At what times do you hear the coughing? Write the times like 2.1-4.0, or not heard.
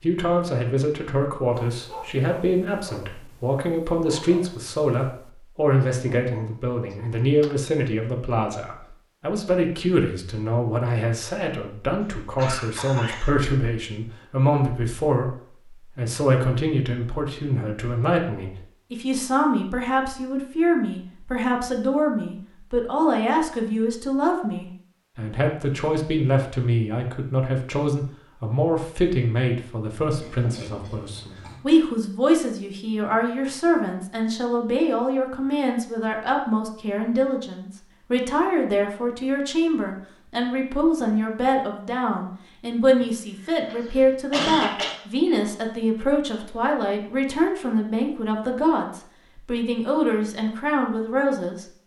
12.0-13.4, 30.1-31.6, 43.0-45.0.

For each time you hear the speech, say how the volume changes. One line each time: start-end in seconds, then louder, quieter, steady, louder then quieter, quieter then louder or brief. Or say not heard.
0.0-51.6 steady.